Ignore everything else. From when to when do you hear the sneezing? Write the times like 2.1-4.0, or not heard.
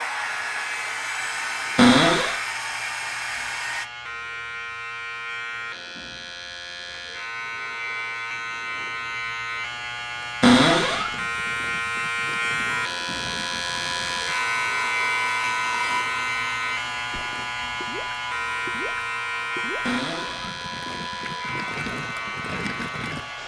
not heard.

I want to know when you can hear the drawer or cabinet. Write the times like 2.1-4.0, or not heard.
1.8-2.4, 10.4-11.1, 19.8-20.5.